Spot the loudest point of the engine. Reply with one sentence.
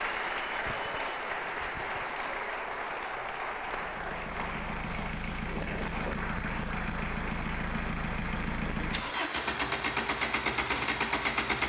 The volume of the engine peaks at 11 seconds.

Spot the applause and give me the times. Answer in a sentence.
You can hear the applause from 0.0 to 11.6 s.